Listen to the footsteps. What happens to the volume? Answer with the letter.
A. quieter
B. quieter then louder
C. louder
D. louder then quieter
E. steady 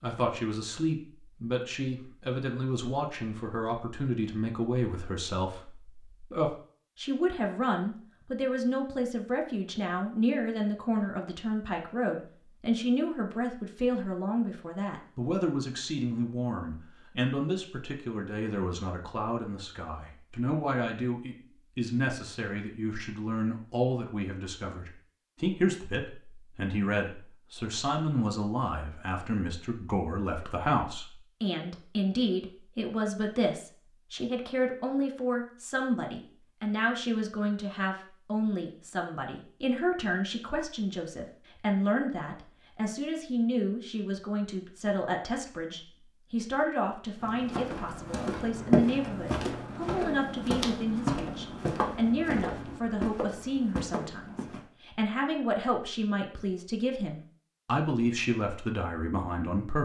A.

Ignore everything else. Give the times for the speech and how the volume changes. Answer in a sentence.
The speech can be heard from 0.0 to 59.8 s, at a steady volume.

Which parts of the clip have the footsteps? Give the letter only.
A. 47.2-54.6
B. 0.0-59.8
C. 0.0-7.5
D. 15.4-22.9
A.